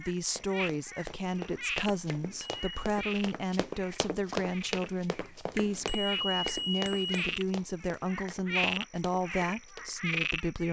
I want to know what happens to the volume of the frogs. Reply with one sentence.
The loudness of the frogs goes down, then up.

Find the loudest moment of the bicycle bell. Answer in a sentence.
The loudest moment of the bicycle bell is at 6 seconds.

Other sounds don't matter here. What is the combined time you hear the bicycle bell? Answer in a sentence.
You can hear the bicycle bell for 2 seconds altogether.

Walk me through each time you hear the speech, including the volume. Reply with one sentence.
You can hear the speech from 0.0 to 10.6 s, at a steady volume.